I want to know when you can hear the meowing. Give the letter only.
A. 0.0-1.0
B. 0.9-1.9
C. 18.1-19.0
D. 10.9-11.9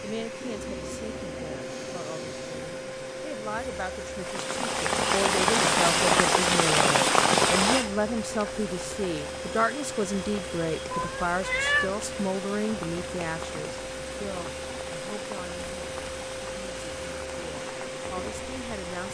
D.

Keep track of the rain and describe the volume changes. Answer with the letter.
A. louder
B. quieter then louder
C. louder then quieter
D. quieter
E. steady
D.